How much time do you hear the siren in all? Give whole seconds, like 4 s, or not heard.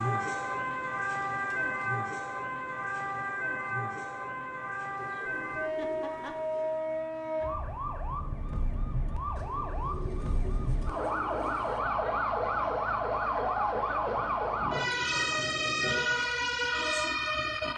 18 s.